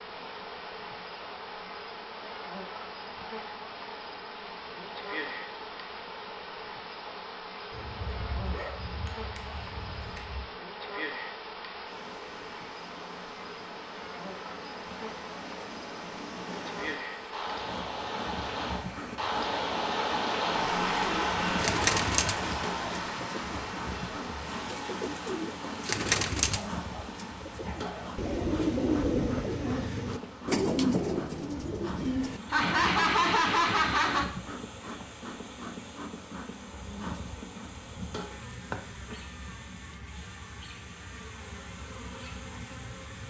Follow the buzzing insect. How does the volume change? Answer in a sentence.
The volume of the buzzing insect stays about the same.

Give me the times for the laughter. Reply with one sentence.
You can hear the laughter from 32.5 to 34.3 s.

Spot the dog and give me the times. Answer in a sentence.
The dog can be heard from 7.7 to 10.5 s and from 26.5 to 28.1 s.